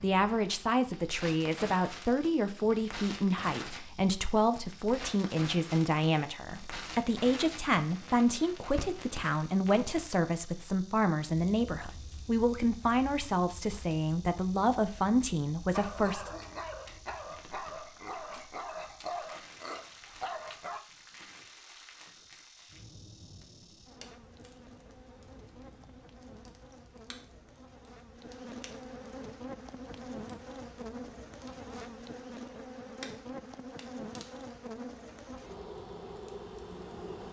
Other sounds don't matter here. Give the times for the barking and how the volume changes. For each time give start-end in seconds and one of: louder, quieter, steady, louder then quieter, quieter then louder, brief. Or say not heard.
15.7-20.8 steady.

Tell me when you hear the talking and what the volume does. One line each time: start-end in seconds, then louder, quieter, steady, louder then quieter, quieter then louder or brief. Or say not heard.
0.0-16.3 steady.